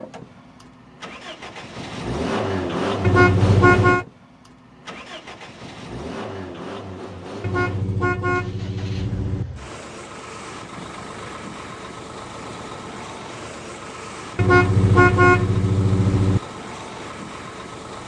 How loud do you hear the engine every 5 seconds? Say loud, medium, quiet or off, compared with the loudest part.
loud, medium, medium, medium.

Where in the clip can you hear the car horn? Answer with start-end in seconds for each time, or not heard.
3.0-4.0, 7.4-9.4, 14.3-16.4.